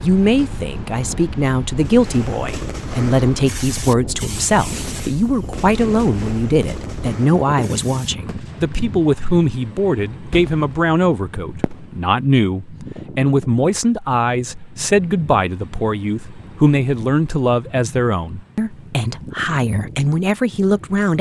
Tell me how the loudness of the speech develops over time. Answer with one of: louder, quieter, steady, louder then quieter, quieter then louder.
steady.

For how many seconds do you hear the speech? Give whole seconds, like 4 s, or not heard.
21 s.